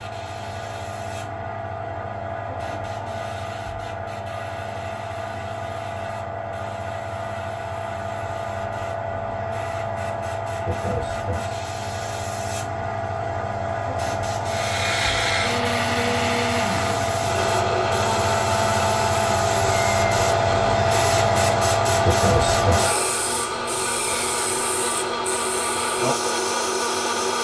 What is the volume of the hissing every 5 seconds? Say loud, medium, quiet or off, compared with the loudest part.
medium, medium, medium, loud, loud, medium.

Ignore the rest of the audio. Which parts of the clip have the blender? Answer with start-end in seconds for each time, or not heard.
14.4-27.3.